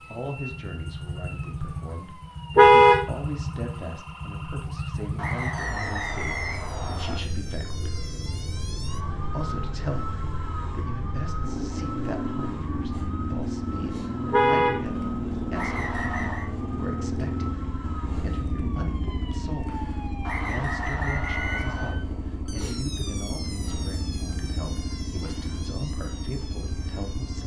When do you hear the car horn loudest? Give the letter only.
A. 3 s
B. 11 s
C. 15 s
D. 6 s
A.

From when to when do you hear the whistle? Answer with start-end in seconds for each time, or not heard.
5.2-7.2, 15.6-16.5, 20.2-21.9.